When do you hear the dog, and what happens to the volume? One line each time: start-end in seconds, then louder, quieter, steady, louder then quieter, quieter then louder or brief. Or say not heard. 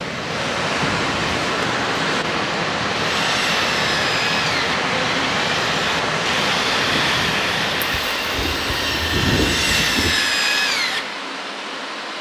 not heard.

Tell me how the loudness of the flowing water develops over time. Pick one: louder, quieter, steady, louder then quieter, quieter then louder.
quieter.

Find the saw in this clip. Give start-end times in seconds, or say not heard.
3.0-11.2.